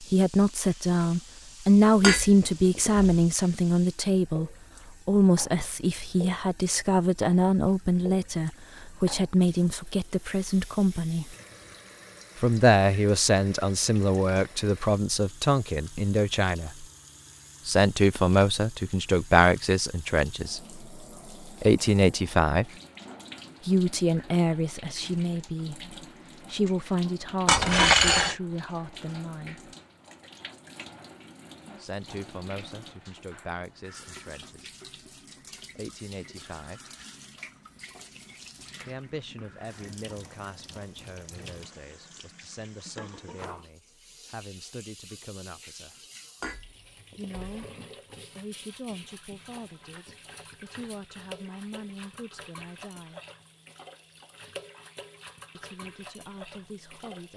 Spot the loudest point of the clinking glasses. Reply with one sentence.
The volume of the clinking glasses peaks at 28 seconds.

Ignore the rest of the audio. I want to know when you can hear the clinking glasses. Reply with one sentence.
You can hear the clinking glasses from 2.0 to 3.1 s, from 27.4 to 28.4 s and from 46.4 to 47.5 s.